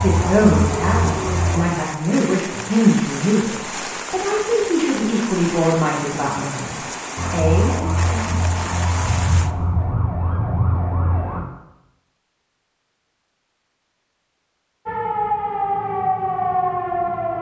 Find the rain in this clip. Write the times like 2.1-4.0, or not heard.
0.0-9.6.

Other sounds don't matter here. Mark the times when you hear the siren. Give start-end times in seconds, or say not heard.
0.0-1.7, 7.2-11.4, 14.8-17.3.